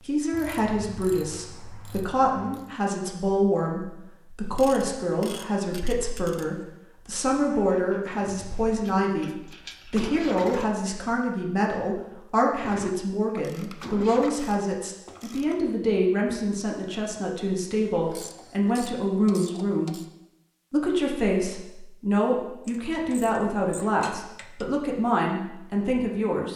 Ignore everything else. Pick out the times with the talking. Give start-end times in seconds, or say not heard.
0.0-20.0, 20.7-26.5.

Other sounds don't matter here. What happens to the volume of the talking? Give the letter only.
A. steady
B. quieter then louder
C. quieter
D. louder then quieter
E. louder
A.